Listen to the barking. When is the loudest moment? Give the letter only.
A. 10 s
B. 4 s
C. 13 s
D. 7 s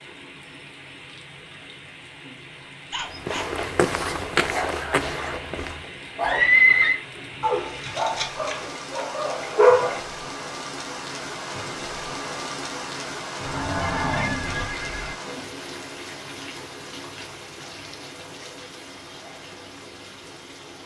A.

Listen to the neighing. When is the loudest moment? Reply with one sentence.
The volume of the neighing peaks at 7 seconds.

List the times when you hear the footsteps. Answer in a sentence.
You can hear the footsteps from 3.0 to 5.9 s.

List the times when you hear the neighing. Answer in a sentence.
You can hear the neighing from 6.2 to 7.0 s and from 13.4 to 15.2 s.